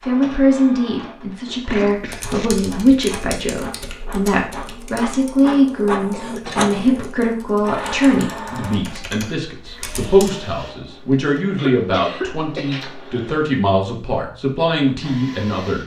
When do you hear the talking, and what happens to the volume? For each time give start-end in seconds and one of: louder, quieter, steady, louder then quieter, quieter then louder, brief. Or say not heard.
0.1-15.8 steady.